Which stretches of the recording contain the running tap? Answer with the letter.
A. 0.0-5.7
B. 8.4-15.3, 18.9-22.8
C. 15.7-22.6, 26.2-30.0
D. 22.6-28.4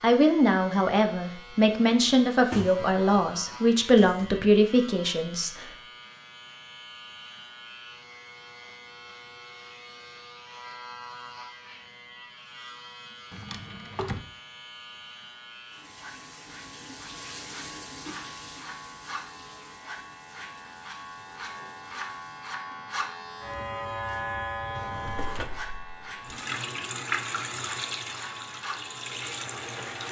C.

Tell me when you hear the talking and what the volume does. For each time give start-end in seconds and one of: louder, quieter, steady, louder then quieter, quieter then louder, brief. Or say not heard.
0.0-5.7 steady.